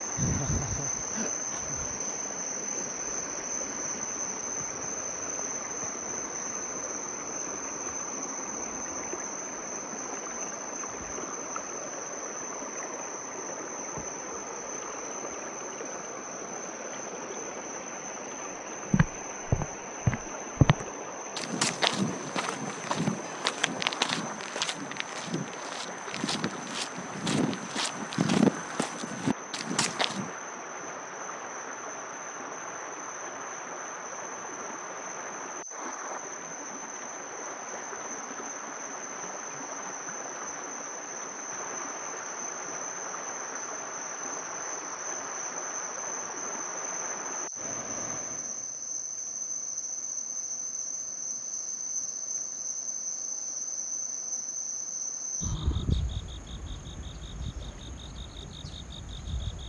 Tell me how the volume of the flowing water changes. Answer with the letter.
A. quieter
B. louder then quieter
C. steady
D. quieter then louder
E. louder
A.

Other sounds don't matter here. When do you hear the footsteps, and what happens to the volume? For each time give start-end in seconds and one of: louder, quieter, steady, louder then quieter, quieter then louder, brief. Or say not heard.
18.9-30.3 quieter then louder.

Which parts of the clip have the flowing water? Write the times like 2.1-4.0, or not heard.
0.0-59.6.